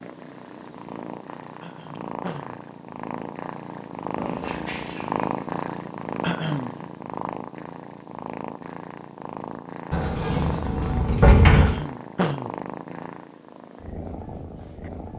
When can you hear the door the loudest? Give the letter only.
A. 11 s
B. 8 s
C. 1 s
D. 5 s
A.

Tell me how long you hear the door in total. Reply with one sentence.
The door can be heard for 3 seconds in total.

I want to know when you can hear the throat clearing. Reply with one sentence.
You can hear the throat clearing from 1.6 to 2.6 s, from 6.2 to 6.8 s and from 11.6 to 12.5 s.